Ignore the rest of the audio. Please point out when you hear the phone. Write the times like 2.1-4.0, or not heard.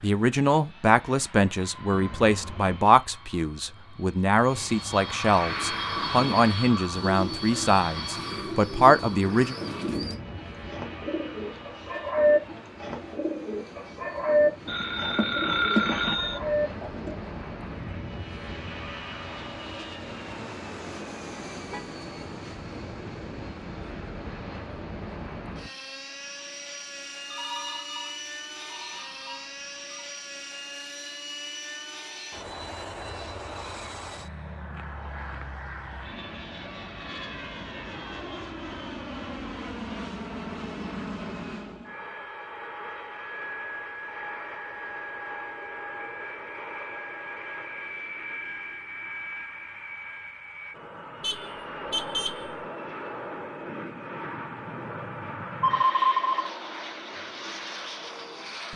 14.7-16.4, 27.3-30.1, 55.6-56.5.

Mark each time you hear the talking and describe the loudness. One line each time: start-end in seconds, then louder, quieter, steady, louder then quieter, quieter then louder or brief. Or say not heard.
0.0-9.6 steady.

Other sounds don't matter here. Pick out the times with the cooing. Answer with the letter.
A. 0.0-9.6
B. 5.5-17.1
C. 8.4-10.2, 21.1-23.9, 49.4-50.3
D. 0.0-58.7
B.